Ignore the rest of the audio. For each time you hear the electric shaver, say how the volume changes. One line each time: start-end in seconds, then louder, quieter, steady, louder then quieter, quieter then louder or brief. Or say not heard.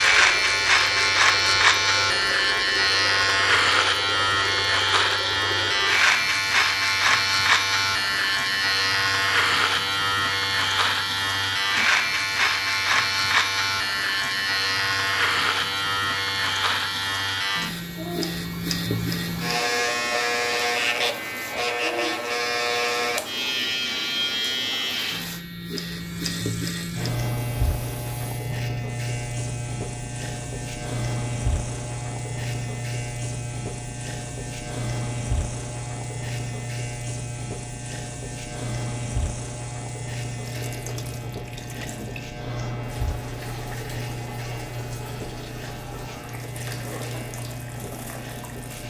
0.0-48.8 quieter.